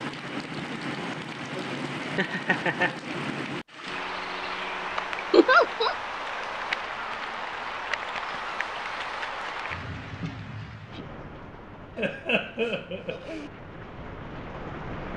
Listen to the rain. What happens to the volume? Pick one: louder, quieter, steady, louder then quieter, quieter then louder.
quieter.